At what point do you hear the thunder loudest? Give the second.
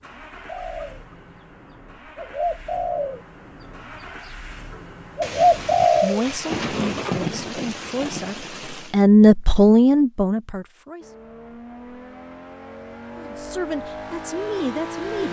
7 s.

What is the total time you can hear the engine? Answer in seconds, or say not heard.
10 s.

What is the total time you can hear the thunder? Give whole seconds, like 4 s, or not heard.
4 s.